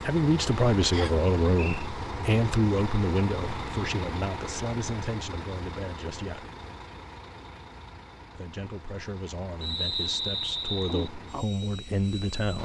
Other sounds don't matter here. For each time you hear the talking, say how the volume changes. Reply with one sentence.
You can hear the talking from 0.0 to 6.5 s, getting quieter; and from 8.3 to 12.5 s, getting louder.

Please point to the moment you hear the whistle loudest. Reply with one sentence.
The volume of the whistle peaks at 10 seconds.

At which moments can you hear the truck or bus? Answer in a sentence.
You can hear the truck or bus from 0.0 to 12.5 s.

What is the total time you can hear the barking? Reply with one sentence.
You can't hear the barking here.